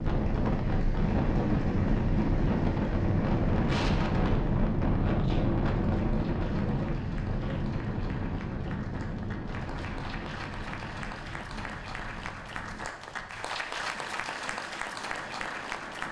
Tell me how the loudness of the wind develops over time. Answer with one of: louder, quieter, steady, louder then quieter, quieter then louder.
quieter.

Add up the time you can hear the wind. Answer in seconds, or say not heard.
16 s.